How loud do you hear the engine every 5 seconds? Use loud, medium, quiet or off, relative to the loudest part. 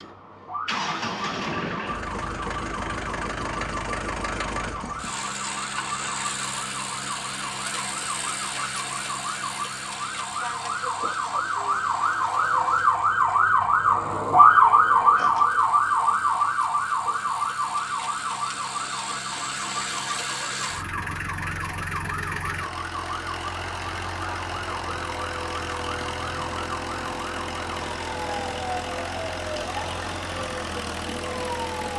loud, loud, medium, medium, loud, loud, loud.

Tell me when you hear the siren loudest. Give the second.
15 s.